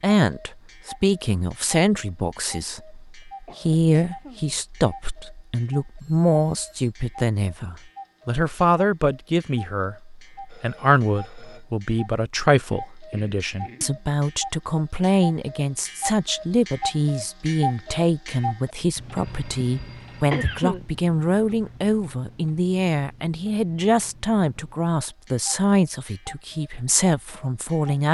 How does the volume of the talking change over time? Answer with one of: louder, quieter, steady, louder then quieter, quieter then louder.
steady.